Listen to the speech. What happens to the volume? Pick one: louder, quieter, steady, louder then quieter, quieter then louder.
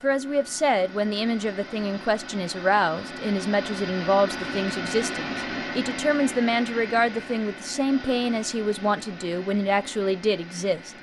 steady.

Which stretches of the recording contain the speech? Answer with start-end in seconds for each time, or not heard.
0.0-10.9.